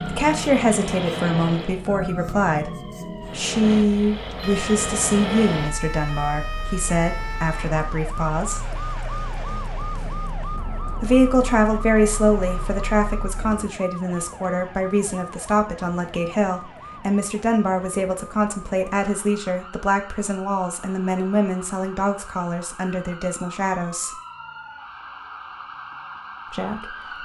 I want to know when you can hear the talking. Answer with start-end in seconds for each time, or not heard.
0.1-8.7, 11.0-24.2, 26.5-27.2.